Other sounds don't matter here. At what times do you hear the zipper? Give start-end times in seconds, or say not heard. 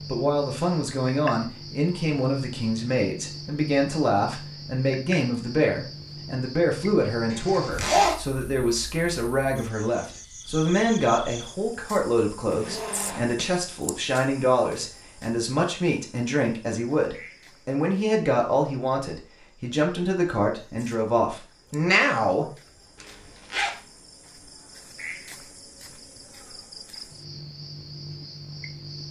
7.3-8.2, 12.5-13.4, 23.0-23.8.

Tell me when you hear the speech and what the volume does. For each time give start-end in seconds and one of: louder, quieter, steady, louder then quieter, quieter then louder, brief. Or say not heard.
0.1-22.6 steady.